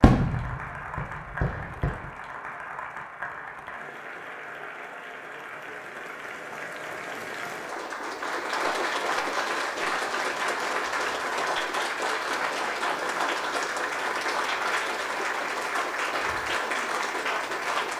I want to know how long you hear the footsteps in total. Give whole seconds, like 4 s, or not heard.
not heard.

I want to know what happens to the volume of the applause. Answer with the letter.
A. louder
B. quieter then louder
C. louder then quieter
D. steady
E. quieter
A.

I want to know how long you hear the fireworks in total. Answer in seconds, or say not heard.
2 s.